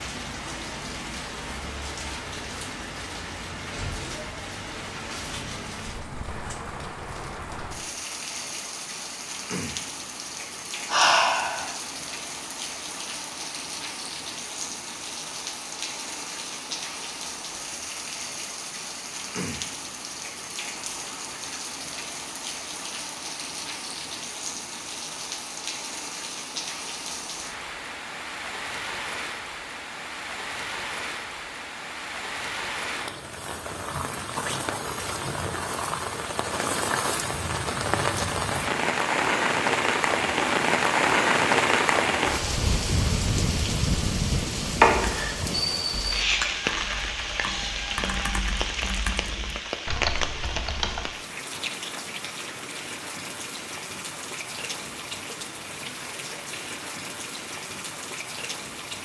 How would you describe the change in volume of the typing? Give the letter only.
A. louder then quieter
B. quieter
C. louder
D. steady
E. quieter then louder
C.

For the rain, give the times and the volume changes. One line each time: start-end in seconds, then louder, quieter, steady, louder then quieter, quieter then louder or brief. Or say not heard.
0.0-59.0 louder then quieter.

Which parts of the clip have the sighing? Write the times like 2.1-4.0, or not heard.
10.8-11.7, 44.8-45.3.